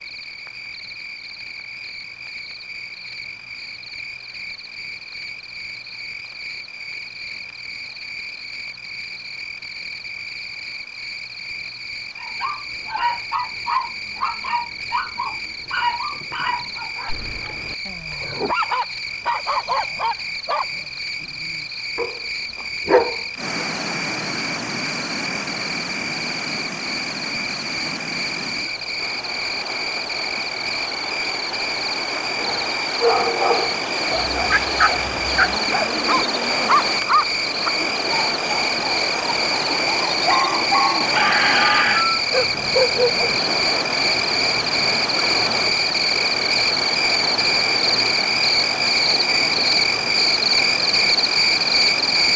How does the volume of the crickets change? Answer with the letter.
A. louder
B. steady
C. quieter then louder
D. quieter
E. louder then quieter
A.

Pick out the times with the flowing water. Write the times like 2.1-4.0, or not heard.
23.4-52.3.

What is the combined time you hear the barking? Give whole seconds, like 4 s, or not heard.
23 s.